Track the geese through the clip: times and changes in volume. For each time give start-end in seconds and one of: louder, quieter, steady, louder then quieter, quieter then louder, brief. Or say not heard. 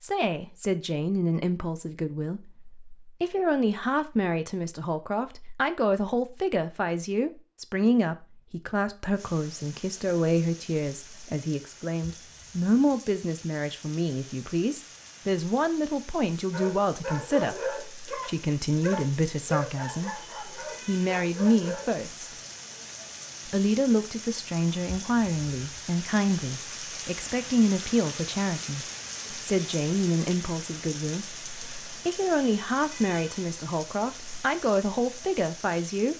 not heard.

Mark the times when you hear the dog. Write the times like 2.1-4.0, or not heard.
16.5-21.9.